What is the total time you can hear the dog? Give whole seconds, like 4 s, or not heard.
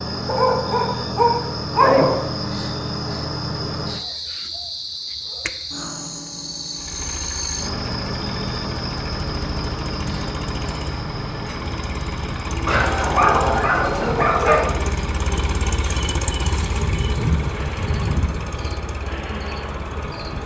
4 s.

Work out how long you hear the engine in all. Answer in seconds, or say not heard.
14 s.